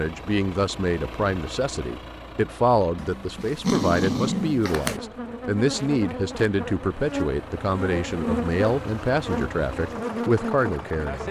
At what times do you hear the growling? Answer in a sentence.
The growling can be heard from 3.0 to 5.0 s.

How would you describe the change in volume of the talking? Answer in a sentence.
The loudness of the talking stays about the same.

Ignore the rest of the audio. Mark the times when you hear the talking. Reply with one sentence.
The talking can be heard from 0.0 to 11.2 s.